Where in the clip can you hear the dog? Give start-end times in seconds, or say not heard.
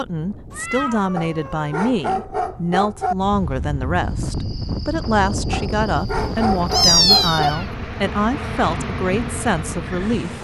1.1-3.1, 5.5-7.5.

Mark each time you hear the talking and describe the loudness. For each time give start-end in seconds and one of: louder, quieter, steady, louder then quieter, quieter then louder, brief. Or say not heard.
0.0-10.3 steady.